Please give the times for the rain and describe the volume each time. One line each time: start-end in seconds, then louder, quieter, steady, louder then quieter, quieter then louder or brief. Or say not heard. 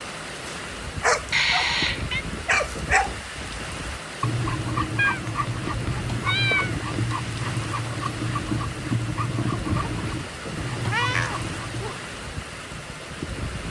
0.0-13.6 steady.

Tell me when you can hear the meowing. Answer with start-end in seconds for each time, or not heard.
1.3-2.2, 5.0-6.8, 10.8-11.9.